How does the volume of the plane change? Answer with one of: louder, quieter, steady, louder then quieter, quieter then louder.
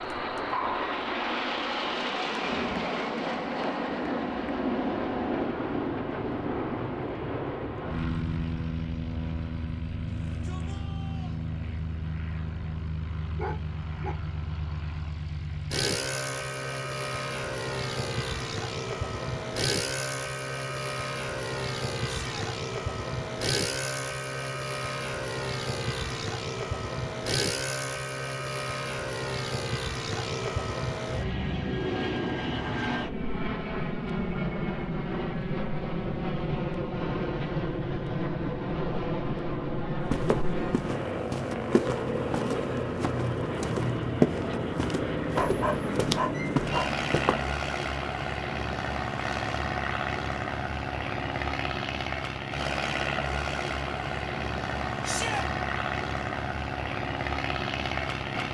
steady.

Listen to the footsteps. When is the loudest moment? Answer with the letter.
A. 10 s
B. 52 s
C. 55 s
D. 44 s
D.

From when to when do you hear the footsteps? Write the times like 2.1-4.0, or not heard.
40.1-47.5.